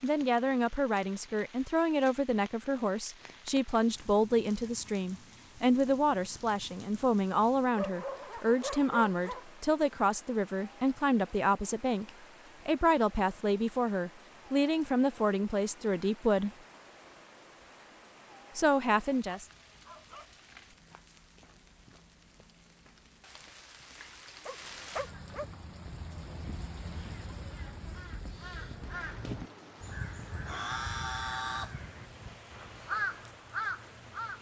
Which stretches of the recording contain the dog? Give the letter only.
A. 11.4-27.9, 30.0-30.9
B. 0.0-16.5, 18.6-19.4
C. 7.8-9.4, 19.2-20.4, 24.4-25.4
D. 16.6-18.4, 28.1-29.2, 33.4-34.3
C.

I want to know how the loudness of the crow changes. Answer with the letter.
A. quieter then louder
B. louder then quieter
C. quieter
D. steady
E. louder
E.